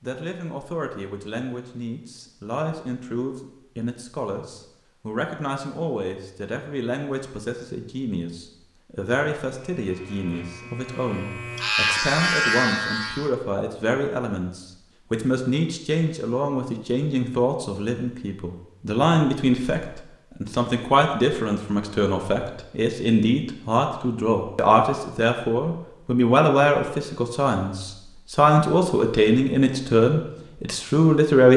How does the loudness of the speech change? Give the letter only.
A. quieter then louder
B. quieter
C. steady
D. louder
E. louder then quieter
D.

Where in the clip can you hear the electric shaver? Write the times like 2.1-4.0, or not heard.
9.6-13.3.